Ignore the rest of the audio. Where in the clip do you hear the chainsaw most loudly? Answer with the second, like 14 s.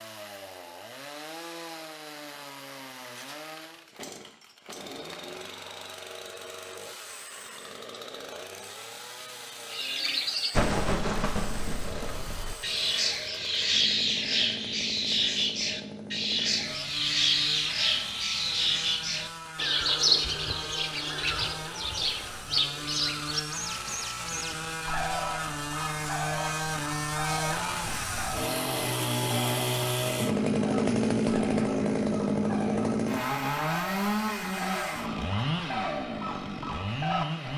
31 s.